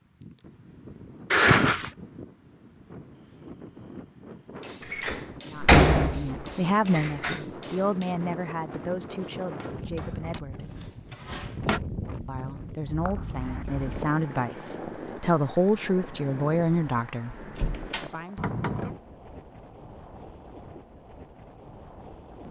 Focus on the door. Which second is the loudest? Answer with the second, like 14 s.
6 s.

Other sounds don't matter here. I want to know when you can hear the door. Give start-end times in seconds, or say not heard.
4.8-7.4, 17.4-18.9.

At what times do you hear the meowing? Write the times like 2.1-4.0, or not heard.
1.3-1.9, 12.8-13.9.